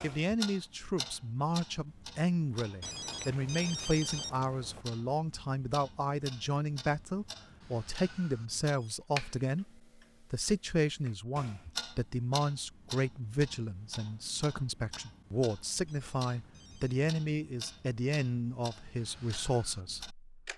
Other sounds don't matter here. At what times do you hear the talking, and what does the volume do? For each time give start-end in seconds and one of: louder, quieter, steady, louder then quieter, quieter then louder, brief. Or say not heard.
0.0-20.5 steady.